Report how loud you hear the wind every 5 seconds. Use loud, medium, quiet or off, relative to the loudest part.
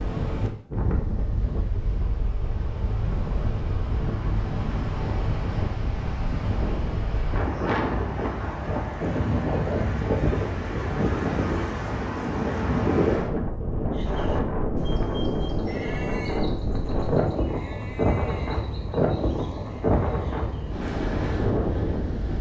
medium, loud, loud, loud, loud.